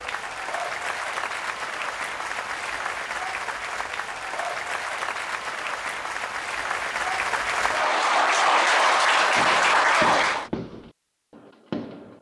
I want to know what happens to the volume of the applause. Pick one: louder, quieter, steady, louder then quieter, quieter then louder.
louder.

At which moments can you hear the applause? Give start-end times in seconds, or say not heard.
0.0-10.5.